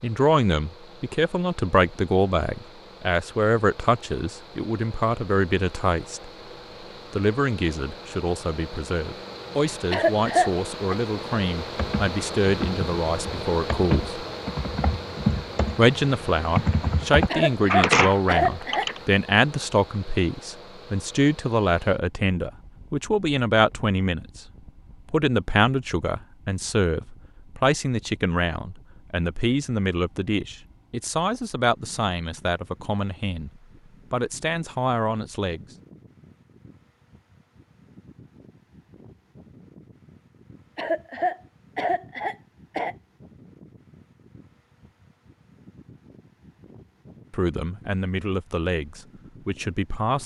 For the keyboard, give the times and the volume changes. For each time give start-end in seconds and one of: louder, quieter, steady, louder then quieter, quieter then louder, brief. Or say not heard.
11.8-19.0 louder.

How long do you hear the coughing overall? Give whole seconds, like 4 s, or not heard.
5 s.